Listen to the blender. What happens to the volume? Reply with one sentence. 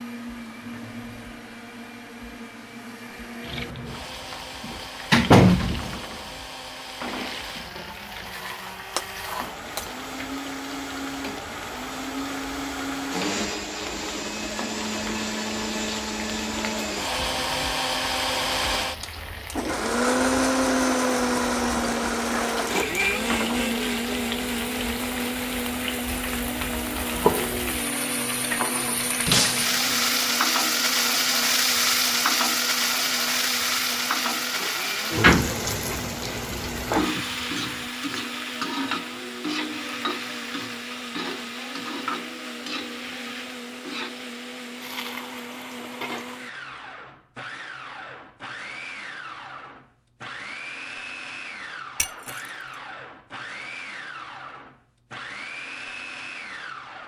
The volume of the blender goes up, then down.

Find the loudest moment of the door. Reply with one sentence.
The loudest moment of the door is at 5 seconds.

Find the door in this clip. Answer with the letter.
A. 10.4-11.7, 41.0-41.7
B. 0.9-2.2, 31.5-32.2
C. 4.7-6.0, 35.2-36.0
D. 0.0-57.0
C.